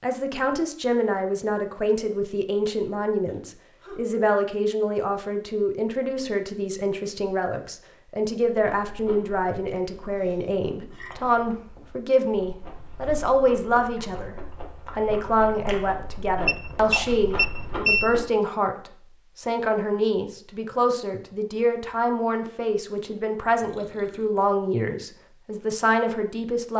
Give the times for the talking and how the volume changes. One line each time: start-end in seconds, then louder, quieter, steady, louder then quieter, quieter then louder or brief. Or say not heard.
0.0-26.7 steady.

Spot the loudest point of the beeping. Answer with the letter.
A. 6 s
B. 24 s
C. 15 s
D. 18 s
D.